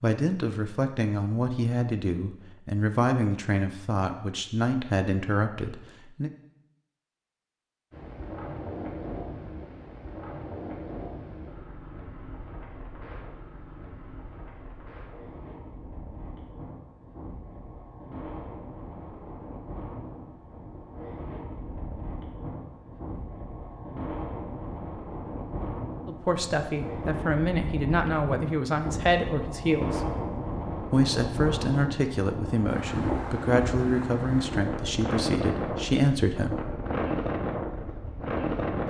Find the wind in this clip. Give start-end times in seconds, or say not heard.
7.9-38.8.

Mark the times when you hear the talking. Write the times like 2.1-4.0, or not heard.
0.0-6.3, 26.1-30.0, 30.9-36.5.